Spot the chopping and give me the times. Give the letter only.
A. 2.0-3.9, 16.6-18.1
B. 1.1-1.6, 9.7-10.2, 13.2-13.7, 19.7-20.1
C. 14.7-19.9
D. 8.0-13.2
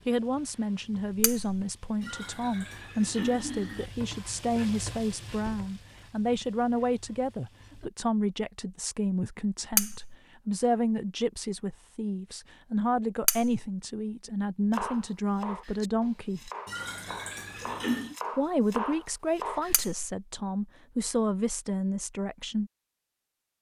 C.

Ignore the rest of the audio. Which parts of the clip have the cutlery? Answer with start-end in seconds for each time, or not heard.
1.1-1.6, 9.7-10.2, 13.2-13.7, 19.7-20.1.